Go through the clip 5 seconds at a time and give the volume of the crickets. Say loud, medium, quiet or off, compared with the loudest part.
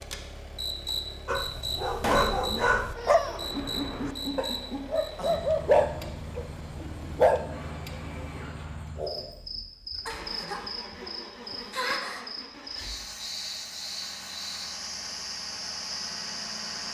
loud, medium, loud, loud.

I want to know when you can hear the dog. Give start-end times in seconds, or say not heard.
1.2-7.5.